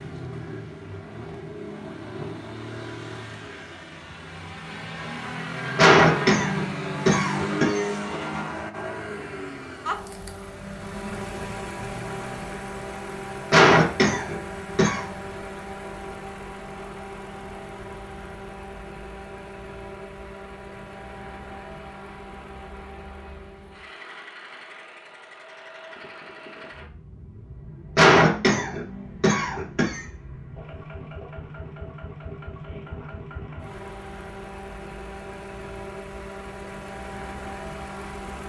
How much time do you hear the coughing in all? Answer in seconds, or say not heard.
6 s.